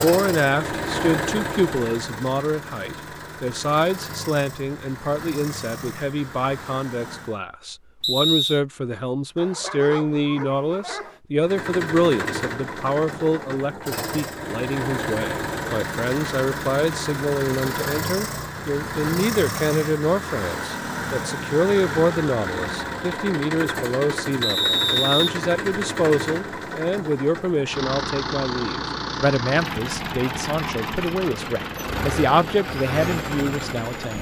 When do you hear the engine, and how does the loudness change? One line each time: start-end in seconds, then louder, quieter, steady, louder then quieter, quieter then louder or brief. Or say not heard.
0.0-7.4 quieter
11.4-34.1 steady.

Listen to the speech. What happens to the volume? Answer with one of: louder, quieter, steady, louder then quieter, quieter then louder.
steady.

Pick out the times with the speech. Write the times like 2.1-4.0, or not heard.
0.0-34.1.